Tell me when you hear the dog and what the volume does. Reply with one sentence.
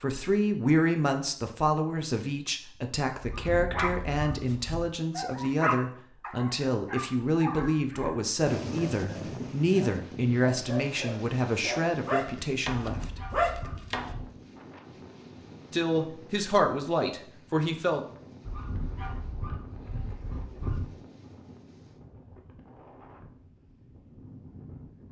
You can hear the dog from 3.7 to 14.2 s, getting quieter then louder.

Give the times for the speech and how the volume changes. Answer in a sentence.
The speech can be heard from 0.0 to 13.2 s, at a steady volume; and briefly from 15.7 to 18.0 s.